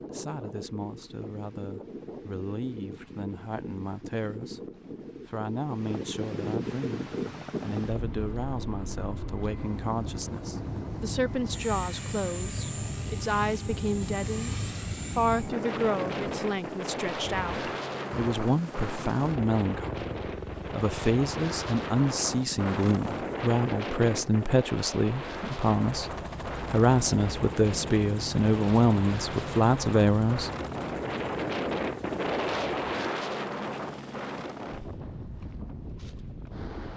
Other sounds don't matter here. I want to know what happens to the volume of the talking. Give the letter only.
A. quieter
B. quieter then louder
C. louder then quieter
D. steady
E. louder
E.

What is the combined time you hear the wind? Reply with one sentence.
You can hear the wind for 37 seconds altogether.